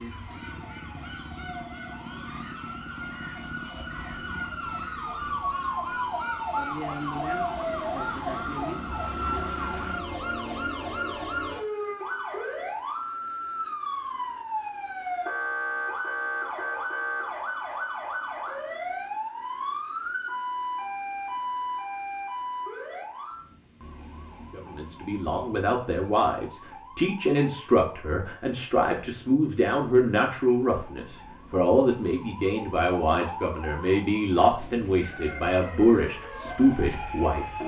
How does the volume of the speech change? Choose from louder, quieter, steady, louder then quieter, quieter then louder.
steady.